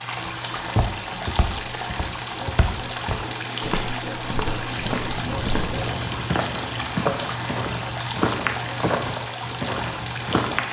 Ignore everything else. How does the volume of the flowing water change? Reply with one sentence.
The loudness of the flowing water stays about the same.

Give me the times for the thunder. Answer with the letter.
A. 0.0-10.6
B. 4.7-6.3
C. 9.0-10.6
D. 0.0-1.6
B.